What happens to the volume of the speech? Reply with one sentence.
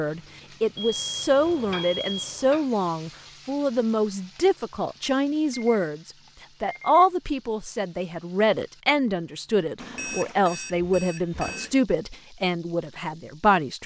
The loudness of the speech stays about the same.